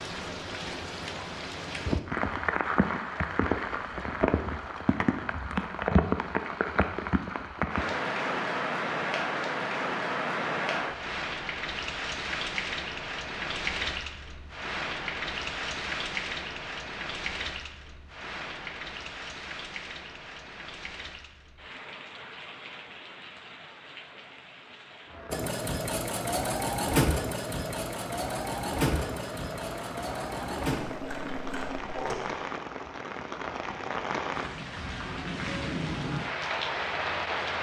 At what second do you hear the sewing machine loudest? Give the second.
27 s.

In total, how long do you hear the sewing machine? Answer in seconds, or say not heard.
7 s.